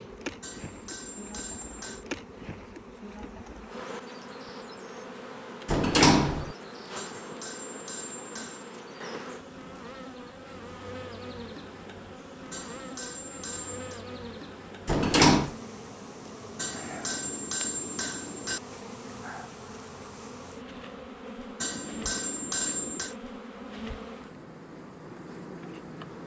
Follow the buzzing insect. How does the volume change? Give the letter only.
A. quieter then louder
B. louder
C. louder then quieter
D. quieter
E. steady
E.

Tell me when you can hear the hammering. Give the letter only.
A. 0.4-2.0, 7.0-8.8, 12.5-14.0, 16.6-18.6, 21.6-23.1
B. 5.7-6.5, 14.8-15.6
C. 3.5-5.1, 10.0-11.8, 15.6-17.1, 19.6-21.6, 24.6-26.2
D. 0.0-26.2
A.